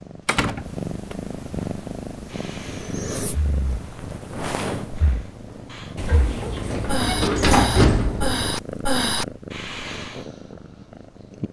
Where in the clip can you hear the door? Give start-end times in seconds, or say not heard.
0.2-1.1, 6.0-8.6.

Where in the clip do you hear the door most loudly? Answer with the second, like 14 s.
8 s.